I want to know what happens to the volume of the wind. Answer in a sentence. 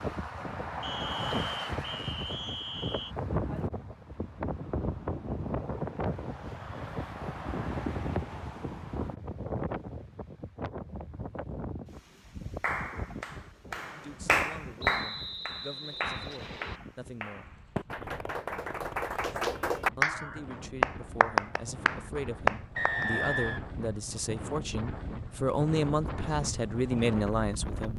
The volume of the wind goes down, then up.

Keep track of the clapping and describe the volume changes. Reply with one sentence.
The loudness of the clapping goes down, then up.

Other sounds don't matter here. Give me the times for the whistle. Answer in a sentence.
You can hear the whistle from 0.8 to 3.1 s, from 14.8 to 16.8 s and from 22.8 to 23.6 s.